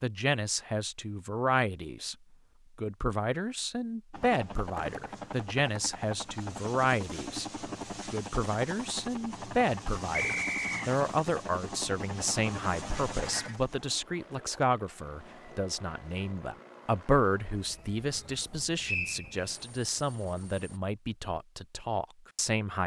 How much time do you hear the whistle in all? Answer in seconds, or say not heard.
2 s.